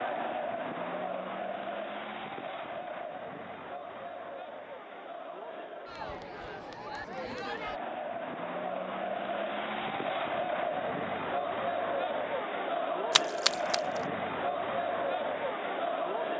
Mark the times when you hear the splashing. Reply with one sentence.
You can hear the splashing from 13.1 to 14.0 s.